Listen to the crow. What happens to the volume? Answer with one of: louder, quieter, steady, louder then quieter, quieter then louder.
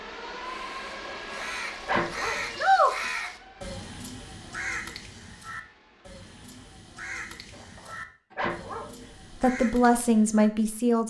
quieter.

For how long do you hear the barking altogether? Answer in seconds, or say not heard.
3 s.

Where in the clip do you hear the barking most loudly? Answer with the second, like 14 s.
2 s.